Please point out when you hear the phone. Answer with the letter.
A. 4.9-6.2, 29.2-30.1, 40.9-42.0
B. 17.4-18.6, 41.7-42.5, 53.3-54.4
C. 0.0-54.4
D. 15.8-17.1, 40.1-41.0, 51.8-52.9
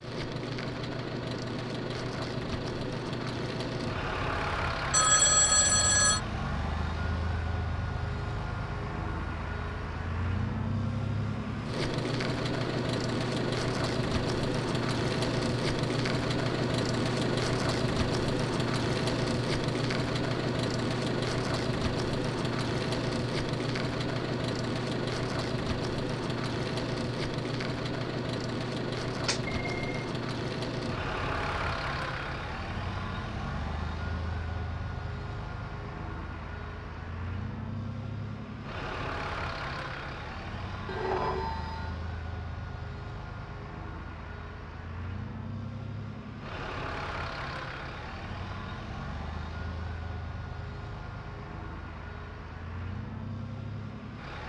A.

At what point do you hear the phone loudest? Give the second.
5 s.